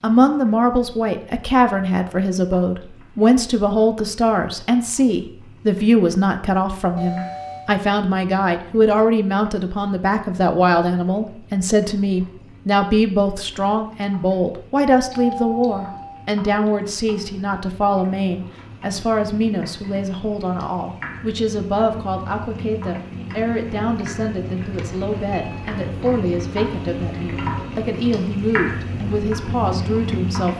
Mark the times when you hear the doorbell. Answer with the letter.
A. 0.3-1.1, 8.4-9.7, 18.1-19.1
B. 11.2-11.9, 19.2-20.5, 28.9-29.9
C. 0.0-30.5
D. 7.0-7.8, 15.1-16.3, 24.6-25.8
D.